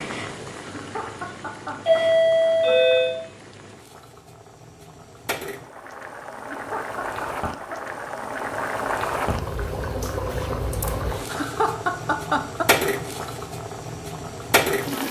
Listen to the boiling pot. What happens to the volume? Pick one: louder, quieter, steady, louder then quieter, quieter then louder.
louder.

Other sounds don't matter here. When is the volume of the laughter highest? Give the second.
12 s.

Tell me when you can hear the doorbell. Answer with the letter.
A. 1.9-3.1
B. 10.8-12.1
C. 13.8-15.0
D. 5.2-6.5
A.